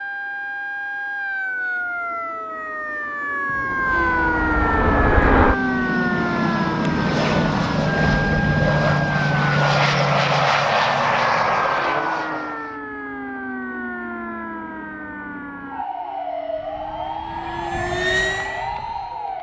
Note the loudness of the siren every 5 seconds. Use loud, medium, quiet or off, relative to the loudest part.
loud, loud, medium, medium.